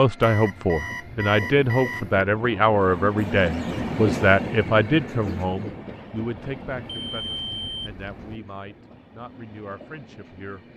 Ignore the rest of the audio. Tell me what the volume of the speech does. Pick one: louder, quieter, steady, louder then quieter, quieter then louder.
quieter.